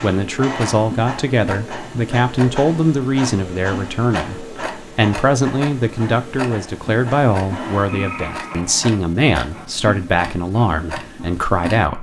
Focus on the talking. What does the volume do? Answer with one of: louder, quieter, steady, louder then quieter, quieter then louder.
steady.